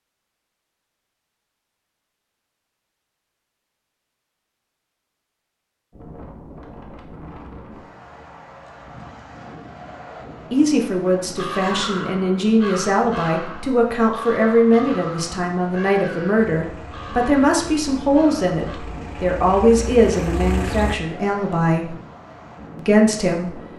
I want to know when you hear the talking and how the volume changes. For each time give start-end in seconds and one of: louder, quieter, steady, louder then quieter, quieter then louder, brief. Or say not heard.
10.5-21.9 steady
22.8-23.6 brief.